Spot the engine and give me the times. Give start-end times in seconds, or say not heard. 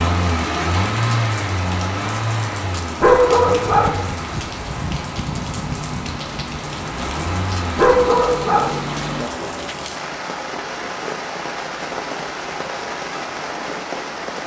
0.0-9.8.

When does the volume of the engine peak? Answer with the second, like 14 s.
1 s.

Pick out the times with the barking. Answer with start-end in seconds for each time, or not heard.
3.0-4.0, 7.8-8.8.